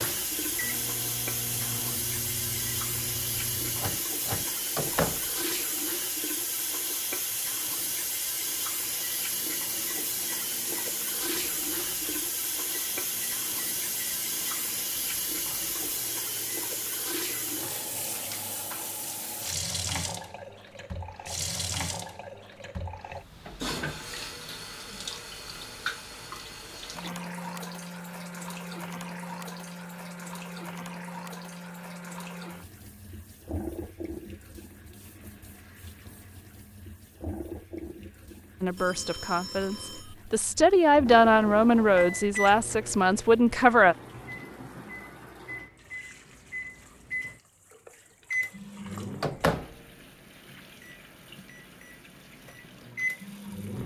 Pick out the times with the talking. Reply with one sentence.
The talking can be heard from 38.6 to 44.0 s.